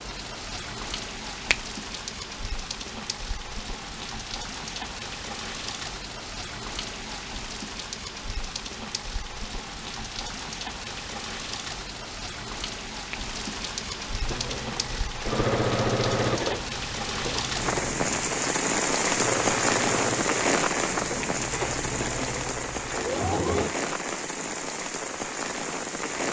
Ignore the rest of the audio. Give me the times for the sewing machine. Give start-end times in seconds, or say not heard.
14.2-23.8.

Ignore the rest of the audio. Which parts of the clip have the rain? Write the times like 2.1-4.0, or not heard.
0.0-26.2.